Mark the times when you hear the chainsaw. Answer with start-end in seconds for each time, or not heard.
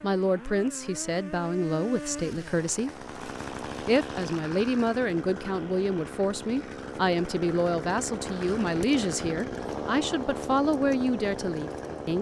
0.0-12.1.